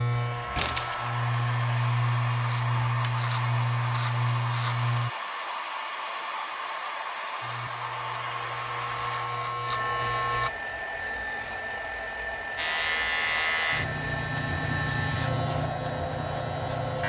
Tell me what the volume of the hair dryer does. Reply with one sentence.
The volume of the hair dryer stays about the same.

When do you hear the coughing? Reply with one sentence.
You can't hear the coughing here.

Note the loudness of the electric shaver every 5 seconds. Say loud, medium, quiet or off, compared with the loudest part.
loud, medium, loud, loud.